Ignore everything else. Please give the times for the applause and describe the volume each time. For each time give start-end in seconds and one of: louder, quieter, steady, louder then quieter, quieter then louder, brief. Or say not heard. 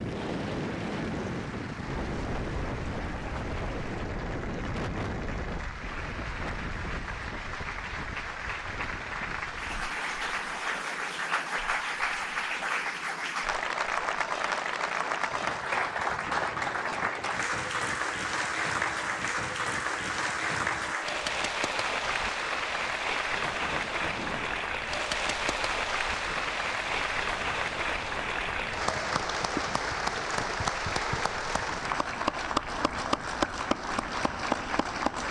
0.0-35.2 louder.